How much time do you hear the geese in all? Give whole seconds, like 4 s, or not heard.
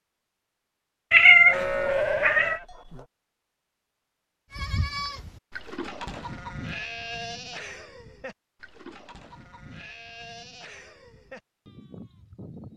not heard.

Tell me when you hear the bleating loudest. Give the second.
2 s.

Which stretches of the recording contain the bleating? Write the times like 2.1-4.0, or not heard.
1.4-3.0, 4.5-12.7.